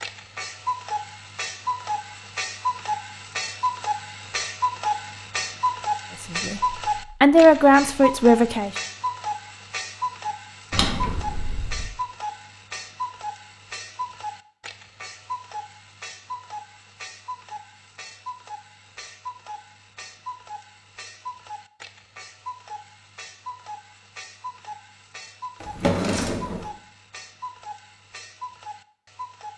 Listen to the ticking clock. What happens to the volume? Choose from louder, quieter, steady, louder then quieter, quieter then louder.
quieter.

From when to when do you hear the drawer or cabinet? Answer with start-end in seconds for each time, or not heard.
10.7-11.9, 25.6-26.7.